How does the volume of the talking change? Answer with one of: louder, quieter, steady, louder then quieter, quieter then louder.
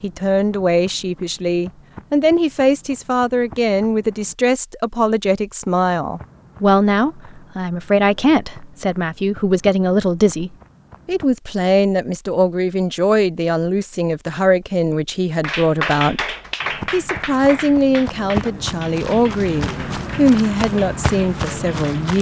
steady.